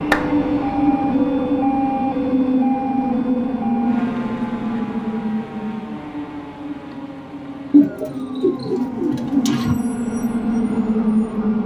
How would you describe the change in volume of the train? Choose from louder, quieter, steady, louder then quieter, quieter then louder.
quieter then louder.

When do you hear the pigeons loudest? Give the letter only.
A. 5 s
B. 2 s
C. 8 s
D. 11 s
C.